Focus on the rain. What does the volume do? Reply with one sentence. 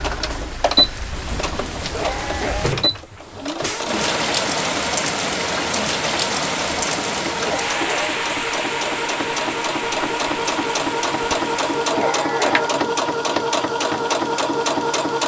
The volume of the rain goes up, then down.